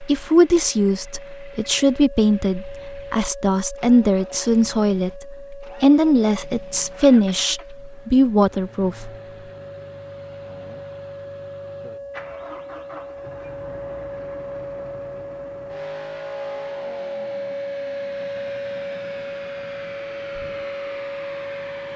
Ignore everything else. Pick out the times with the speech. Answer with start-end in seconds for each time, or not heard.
0.0-9.1.